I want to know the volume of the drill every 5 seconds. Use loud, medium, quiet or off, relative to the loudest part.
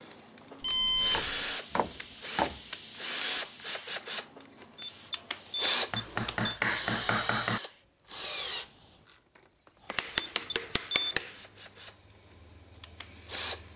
loud, loud, medium.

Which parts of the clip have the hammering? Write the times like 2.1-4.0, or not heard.
1.0-2.6, 5.9-7.6, 9.8-11.4.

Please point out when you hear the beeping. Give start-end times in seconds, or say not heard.
0.6-1.4, 4.8-6.5, 10.2-11.2.